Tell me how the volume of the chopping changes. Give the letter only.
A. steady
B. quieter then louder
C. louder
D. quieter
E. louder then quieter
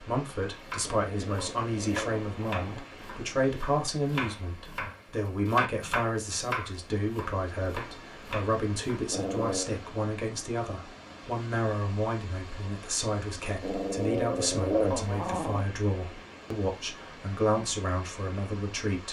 E.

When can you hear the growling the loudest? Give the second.
15 s.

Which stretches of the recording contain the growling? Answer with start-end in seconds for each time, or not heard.
0.8-2.9, 9.1-9.7, 13.6-15.7.